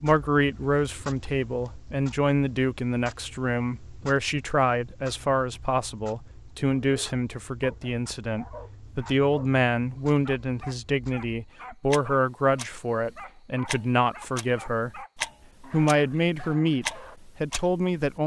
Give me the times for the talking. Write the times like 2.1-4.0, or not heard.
0.0-15.0, 15.6-18.2.